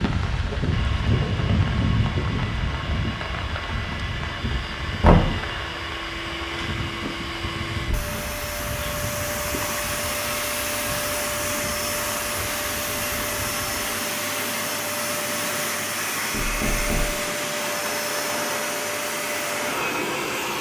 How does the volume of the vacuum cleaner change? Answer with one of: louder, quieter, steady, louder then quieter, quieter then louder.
louder.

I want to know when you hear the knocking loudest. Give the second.
5 s.